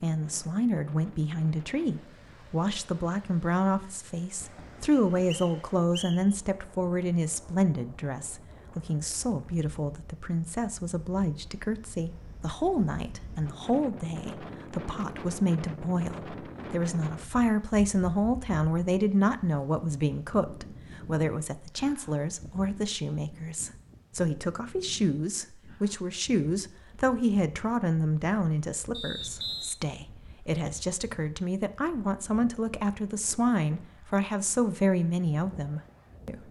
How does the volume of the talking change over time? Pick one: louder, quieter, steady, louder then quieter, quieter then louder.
steady.